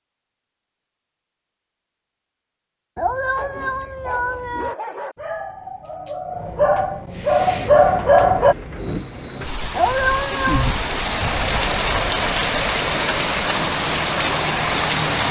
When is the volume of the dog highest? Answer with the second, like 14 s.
8 s.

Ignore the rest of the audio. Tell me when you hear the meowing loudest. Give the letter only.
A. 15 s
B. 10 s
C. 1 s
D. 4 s
B.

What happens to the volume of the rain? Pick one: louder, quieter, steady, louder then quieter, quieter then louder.
louder.